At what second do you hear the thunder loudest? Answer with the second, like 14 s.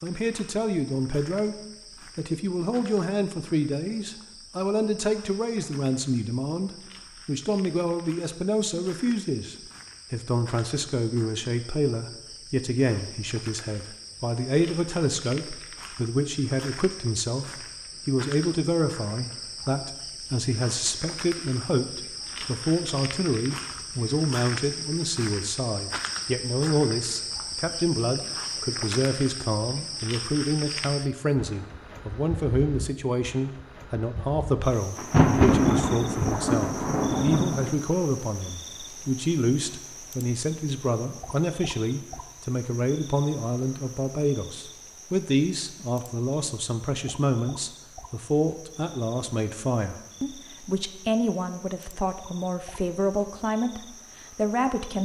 35 s.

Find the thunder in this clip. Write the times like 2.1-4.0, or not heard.
35.0-37.8.